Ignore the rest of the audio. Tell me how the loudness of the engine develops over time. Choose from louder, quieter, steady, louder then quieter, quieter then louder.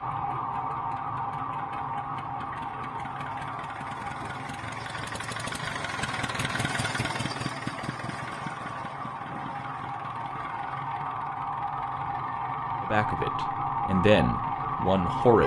louder then quieter.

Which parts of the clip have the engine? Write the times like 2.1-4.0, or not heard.
0.0-15.4.